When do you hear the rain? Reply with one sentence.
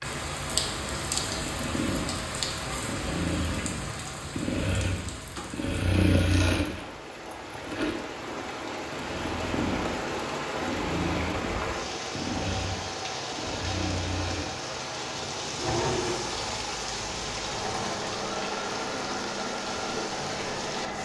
The rain can be heard from 0.0 to 20.9 s.